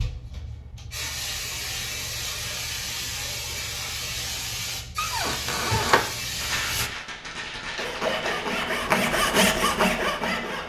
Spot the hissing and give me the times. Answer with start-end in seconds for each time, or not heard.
0.0-6.9.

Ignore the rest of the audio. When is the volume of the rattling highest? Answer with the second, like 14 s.
7 s.